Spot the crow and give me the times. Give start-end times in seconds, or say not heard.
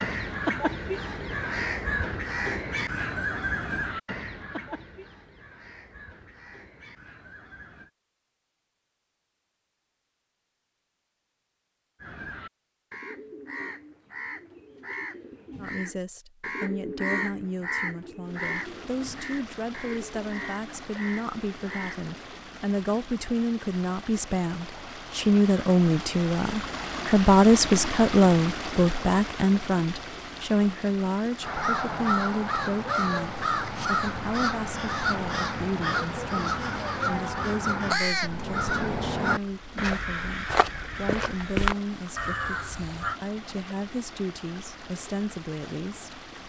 0.0-7.9, 12.0-22.1, 31.4-43.2.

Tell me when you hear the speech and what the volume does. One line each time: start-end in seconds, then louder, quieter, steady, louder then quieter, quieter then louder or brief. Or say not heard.
15.6-46.2 louder then quieter.